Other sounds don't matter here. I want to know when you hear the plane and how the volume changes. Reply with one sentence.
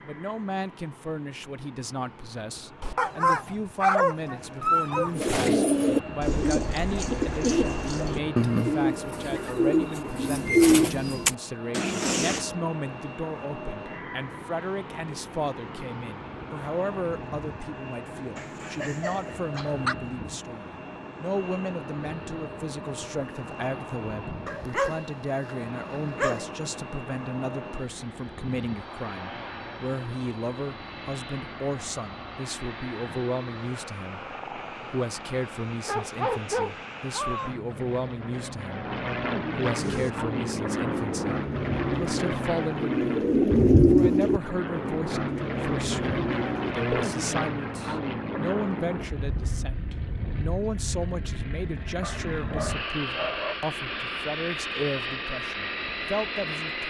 You can hear the plane from 0.0 to 56.8 s, getting louder.